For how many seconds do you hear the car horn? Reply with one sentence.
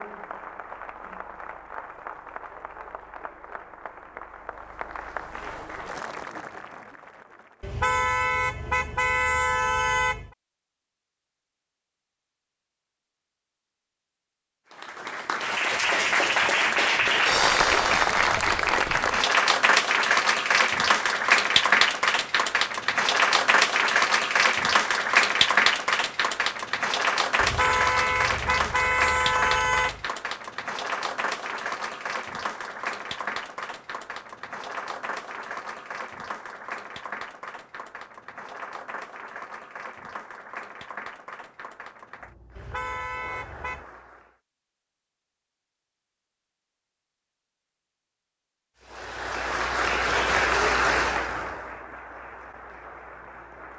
You can hear the car horn for 7 seconds altogether.